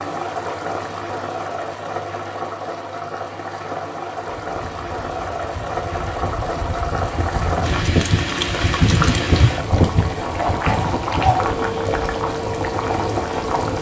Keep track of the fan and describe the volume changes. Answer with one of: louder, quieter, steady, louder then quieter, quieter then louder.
louder then quieter.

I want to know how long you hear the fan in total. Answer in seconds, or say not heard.
9 s.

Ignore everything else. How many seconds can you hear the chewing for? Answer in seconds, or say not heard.
not heard.